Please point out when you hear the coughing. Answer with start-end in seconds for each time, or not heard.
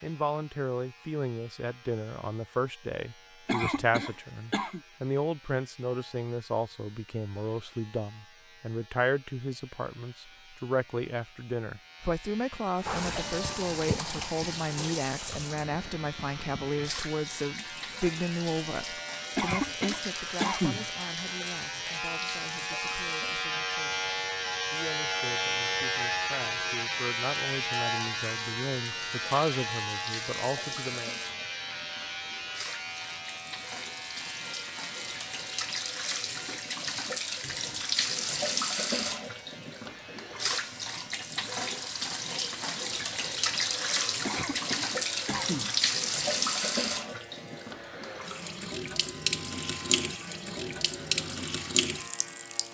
3.5-4.8, 19.4-20.9, 44.2-45.8.